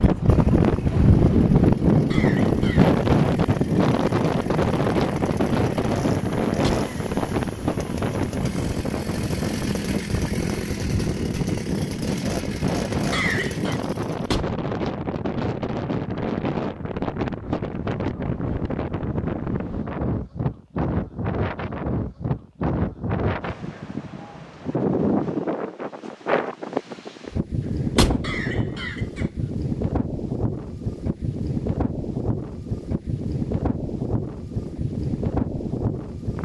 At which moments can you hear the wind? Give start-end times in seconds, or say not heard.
0.0-36.4.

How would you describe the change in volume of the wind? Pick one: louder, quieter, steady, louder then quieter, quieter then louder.
quieter.